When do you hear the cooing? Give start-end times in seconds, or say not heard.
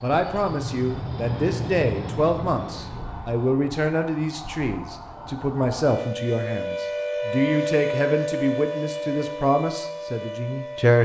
not heard.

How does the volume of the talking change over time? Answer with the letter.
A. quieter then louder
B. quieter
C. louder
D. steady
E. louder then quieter
D.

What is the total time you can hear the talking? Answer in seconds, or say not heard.
11 s.